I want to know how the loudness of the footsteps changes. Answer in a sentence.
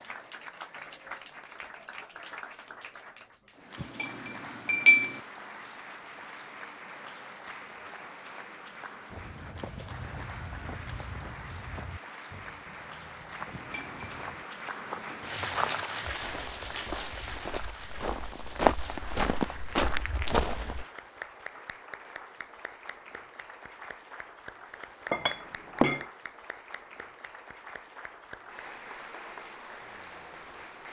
The volume of the footsteps goes up.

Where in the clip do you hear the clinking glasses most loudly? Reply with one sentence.
The volume of the clinking glasses peaks at 5 seconds.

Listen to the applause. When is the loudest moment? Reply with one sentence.
The loudest moment of the applause is at 16 seconds.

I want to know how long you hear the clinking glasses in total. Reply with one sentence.
The clinking glasses can be heard for 3 seconds in total.